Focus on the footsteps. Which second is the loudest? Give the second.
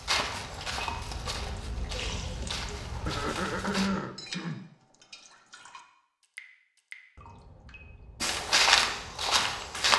9 s.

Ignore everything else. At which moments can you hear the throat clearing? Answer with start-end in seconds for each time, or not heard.
3.0-4.7.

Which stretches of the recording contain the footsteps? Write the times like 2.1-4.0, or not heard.
0.0-3.9, 8.2-9.9.